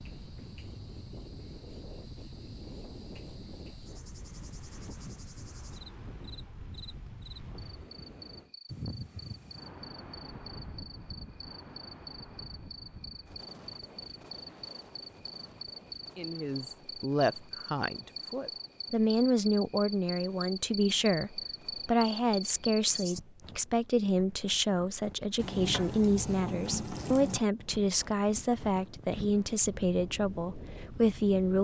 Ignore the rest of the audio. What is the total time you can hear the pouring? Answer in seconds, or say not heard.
2 s.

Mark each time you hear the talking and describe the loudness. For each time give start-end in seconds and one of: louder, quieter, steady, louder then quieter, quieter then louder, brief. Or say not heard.
16.1-31.5 steady.